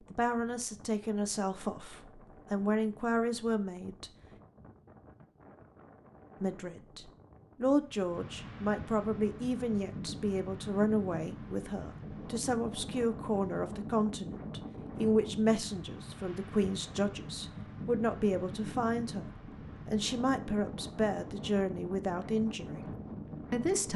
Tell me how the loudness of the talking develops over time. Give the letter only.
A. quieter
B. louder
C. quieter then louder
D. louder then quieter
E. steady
E.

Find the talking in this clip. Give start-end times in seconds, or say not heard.
0.1-4.1, 6.4-23.9.